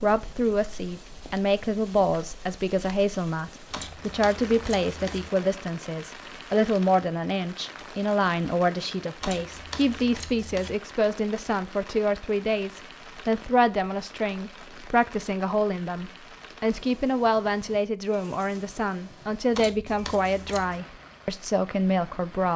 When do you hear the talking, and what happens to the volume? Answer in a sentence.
The talking can be heard from 0.0 to 22.5 s, at a steady volume.